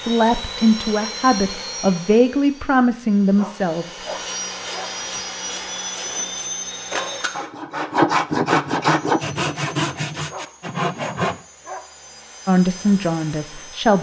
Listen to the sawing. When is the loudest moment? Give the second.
8 s.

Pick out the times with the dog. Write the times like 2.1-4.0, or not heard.
3.4-5.0, 10.3-11.9.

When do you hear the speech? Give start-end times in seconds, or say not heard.
0.1-4.0, 12.4-13.9.